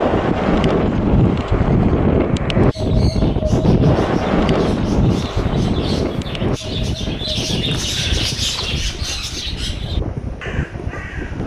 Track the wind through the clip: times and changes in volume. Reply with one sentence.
The wind can be heard from 0.0 to 11.4 s, getting quieter.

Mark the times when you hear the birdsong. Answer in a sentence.
You can hear the birdsong from 2.5 to 11.4 s.